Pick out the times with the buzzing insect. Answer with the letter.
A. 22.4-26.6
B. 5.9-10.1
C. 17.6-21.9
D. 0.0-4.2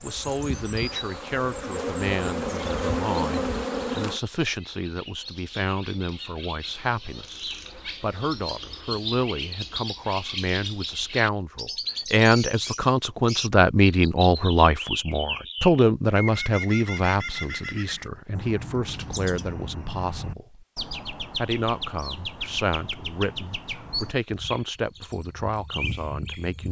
D.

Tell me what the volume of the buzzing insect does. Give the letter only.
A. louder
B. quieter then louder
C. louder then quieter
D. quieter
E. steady
A.